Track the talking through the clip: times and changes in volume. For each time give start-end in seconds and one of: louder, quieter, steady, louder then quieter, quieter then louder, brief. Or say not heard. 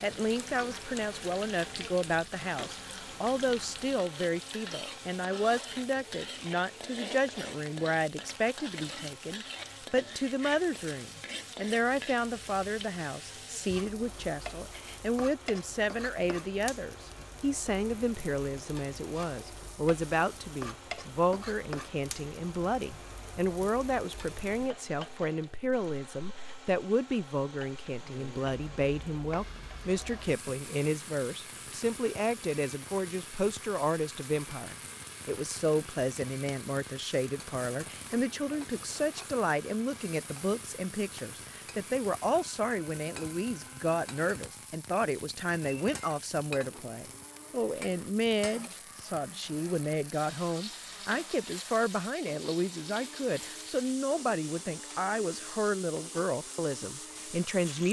0.0-57.8 steady.